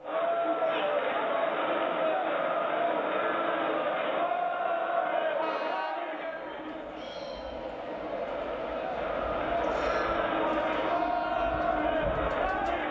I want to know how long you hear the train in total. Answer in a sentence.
You can hear the train for 13 seconds altogether.